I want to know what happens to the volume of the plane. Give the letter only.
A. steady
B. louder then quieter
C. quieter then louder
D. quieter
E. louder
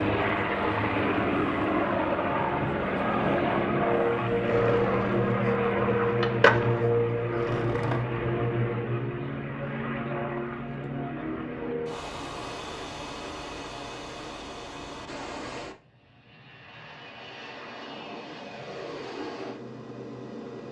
D.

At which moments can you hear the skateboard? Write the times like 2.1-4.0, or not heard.
4.5-8.1.